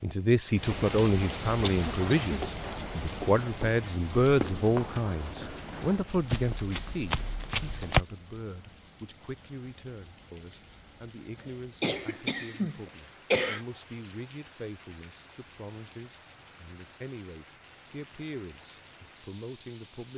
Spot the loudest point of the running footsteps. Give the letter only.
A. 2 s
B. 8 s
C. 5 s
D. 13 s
B.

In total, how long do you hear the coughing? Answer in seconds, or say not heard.
3 s.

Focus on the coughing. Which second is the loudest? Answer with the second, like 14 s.
13 s.